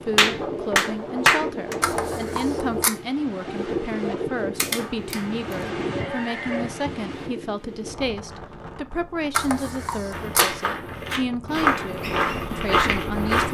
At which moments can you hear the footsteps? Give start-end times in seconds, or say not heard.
10.1-13.4.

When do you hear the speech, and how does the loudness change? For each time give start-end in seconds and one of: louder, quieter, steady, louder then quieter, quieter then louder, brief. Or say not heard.
0.0-13.4 steady.